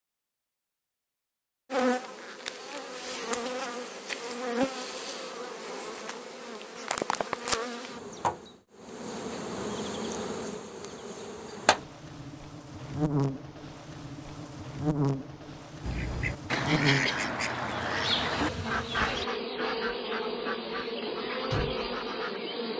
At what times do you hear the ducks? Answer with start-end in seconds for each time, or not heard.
15.8-22.4.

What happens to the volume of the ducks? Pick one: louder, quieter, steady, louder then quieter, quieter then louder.
quieter.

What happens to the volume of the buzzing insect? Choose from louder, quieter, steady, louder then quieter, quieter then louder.
steady.